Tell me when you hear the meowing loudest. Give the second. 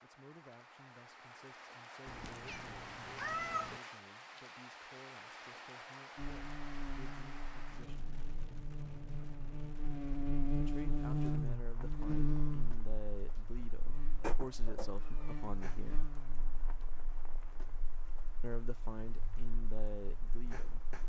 3 s.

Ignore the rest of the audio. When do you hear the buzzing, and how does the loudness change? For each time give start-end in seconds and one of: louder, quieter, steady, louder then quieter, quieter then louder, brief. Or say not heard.
6.2-21.0 louder then quieter.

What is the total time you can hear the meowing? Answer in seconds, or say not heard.
3 s.